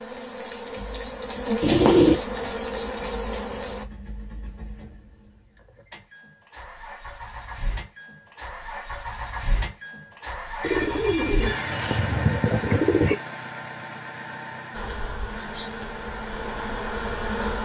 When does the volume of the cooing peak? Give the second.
2 s.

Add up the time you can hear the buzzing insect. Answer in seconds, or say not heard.
7 s.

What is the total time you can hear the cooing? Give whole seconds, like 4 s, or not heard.
3 s.